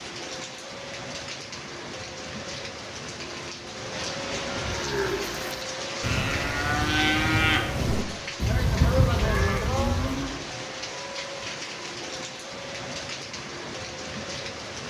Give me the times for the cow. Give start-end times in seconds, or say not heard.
4.7-10.4.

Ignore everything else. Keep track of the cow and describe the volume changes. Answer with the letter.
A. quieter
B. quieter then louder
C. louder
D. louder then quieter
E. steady
C.